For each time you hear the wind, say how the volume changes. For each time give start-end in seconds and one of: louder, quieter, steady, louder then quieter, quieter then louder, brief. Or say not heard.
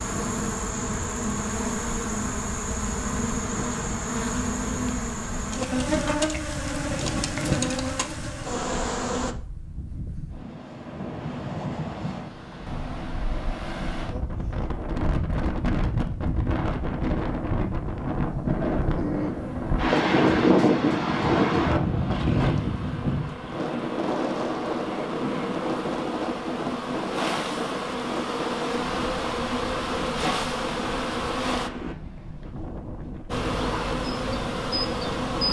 0.0-35.4 louder then quieter.